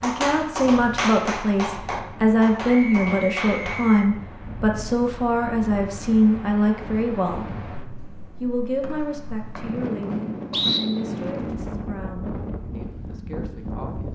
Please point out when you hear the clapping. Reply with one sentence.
The clapping can be heard from 0.0 to 3.9 s.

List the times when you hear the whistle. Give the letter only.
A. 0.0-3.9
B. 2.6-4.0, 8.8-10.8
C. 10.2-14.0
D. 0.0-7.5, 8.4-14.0
B.